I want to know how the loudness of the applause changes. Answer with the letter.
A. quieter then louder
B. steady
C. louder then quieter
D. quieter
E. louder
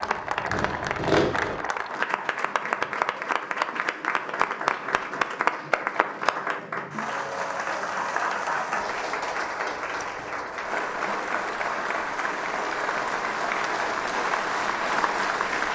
B.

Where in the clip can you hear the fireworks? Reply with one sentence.
You can hear the fireworks from 0.0 to 1.6 s.